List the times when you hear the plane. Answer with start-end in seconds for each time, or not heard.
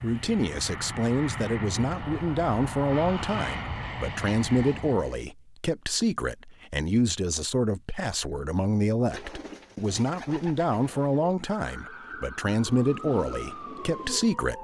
0.0-5.2.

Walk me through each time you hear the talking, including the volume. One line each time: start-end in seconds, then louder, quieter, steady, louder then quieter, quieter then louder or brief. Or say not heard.
0.0-14.5 steady.